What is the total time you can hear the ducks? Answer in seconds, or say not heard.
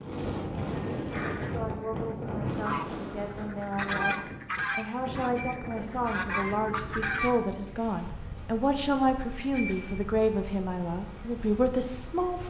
6 s.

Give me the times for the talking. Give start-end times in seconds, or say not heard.
1.5-12.4.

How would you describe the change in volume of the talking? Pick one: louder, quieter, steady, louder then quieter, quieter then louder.
louder.